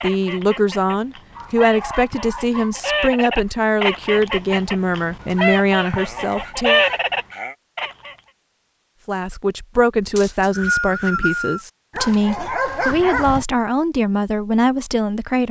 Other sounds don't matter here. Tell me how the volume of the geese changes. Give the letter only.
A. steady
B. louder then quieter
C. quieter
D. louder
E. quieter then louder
D.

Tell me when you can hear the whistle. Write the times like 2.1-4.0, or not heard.
10.2-11.6.